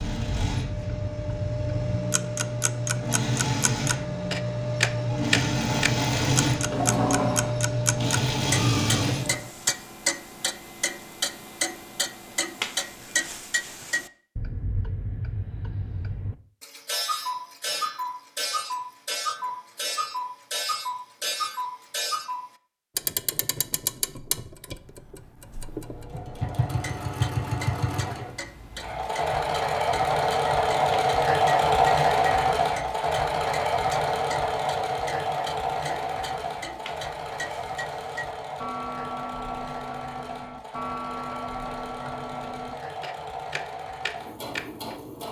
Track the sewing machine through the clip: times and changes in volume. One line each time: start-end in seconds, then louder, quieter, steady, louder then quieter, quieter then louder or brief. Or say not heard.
0.0-9.5 louder
25.7-45.2 louder then quieter.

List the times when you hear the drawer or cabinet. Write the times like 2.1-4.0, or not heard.
6.5-7.5.